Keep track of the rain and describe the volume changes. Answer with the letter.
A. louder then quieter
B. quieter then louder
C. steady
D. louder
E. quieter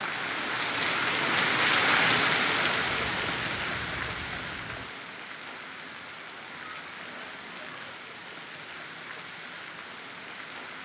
E.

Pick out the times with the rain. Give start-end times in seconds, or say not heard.
0.0-10.8.